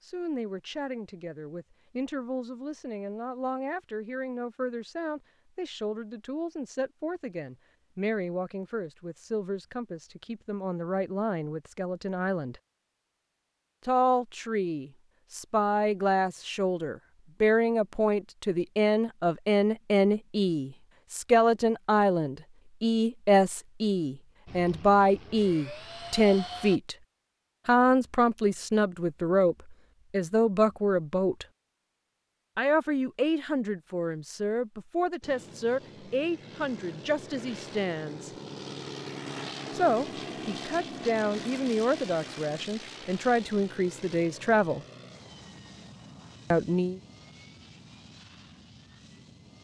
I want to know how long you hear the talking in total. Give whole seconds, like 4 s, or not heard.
41 s.